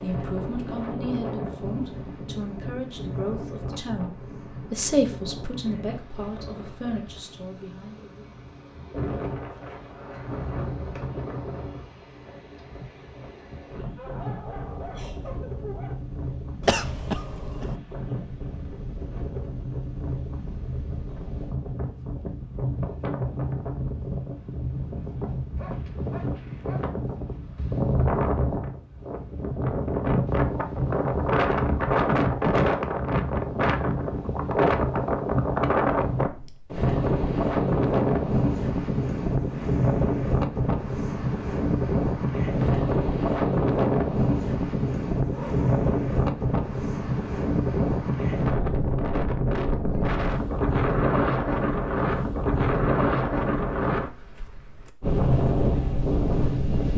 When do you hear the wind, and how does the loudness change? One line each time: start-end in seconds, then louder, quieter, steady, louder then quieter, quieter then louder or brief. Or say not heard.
0.0-56.9 louder.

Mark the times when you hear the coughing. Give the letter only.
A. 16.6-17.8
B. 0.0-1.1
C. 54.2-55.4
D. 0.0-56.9
A.